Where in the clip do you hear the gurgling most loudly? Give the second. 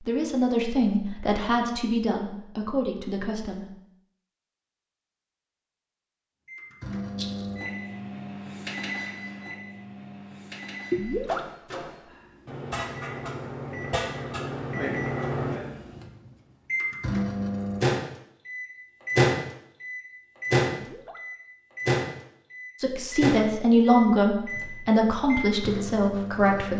11 s.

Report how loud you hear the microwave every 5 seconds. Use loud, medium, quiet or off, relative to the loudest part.
off, medium, medium, loud, loud, medium.